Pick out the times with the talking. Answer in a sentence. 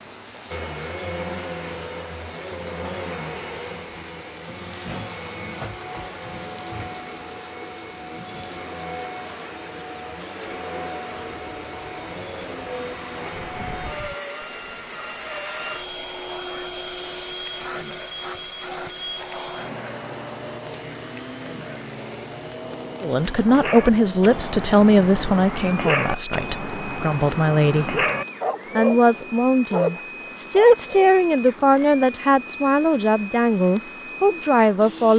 The talking can be heard from 23.0 to 28.0 s and from 28.8 to 35.1 s.